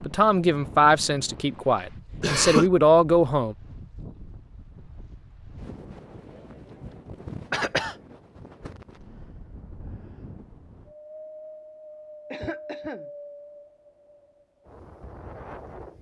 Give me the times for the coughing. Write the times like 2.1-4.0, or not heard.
2.2-2.7, 7.5-8.0, 12.3-13.1.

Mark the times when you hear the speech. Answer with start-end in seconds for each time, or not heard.
0.0-3.5.